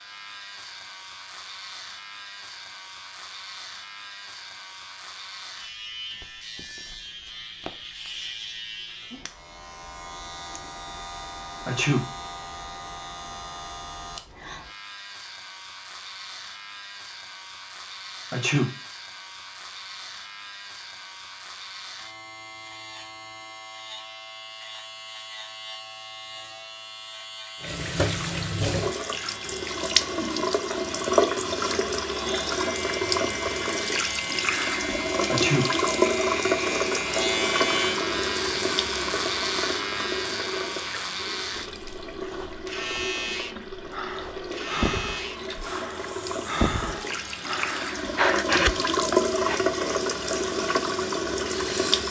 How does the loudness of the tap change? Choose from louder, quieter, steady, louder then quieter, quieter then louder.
quieter then louder.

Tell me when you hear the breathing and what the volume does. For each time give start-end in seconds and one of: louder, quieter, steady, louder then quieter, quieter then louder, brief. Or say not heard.
43.9-50.0 quieter then louder.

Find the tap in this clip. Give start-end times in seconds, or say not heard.
27.6-52.0.